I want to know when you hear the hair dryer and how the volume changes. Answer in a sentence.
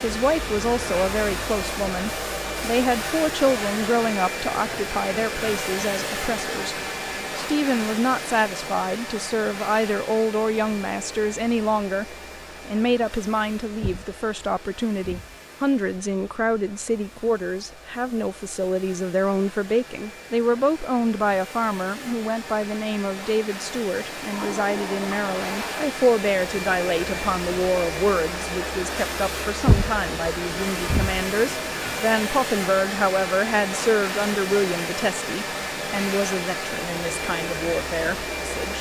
You can hear the hair dryer from 0.0 to 38.7 s, getting quieter then louder.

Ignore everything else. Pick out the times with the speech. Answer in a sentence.
The speech can be heard from 0.0 to 6.8 s and from 7.3 to 38.7 s.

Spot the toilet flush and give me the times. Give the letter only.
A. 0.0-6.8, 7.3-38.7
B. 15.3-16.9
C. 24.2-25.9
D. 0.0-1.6
C.